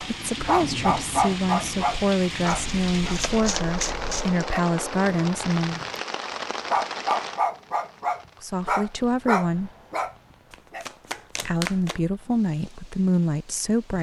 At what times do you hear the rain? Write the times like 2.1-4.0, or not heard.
0.0-13.9.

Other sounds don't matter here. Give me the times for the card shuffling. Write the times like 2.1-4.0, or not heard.
2.5-4.4, 10.5-12.0.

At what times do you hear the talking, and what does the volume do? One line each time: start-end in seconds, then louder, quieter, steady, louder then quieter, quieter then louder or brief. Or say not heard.
0.0-5.8 steady
8.4-9.7 brief
11.4-13.9 brief.